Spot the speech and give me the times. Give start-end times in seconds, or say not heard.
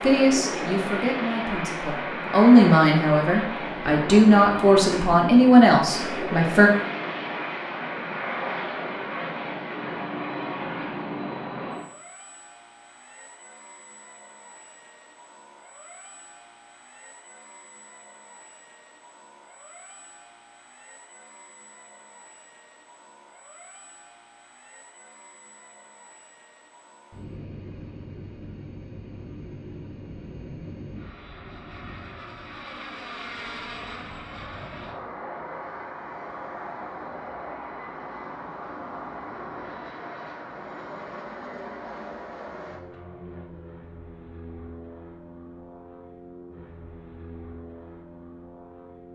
0.0-6.7.